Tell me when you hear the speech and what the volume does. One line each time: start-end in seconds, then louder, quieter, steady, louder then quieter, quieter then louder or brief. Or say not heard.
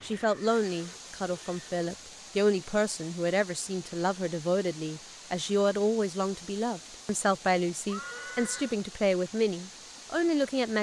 0.0-10.7 steady.